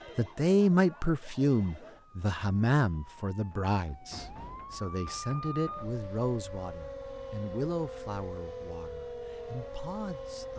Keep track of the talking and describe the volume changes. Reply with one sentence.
The loudness of the talking goes down.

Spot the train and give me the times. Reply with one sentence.
You can't hear the train here.